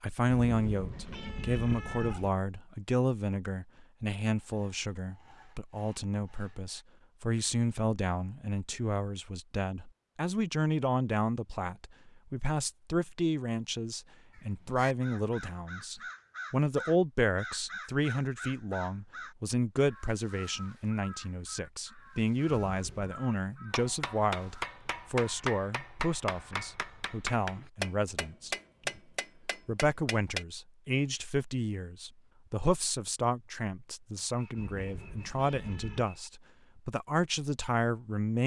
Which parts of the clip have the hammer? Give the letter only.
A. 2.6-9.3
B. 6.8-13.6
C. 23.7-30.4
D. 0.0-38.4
C.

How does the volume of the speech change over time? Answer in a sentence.
The loudness of the speech stays about the same.